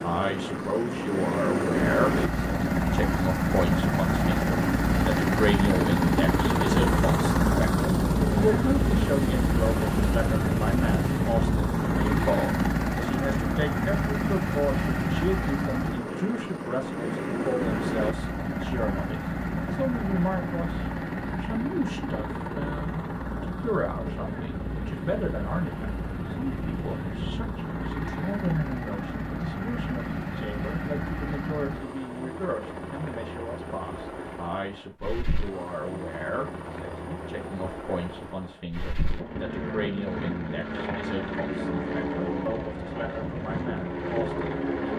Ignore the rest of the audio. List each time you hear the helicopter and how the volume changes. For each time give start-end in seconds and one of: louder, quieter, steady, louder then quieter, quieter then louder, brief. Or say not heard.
0.0-44.9 quieter.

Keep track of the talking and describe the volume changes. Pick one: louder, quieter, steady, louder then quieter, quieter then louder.
quieter.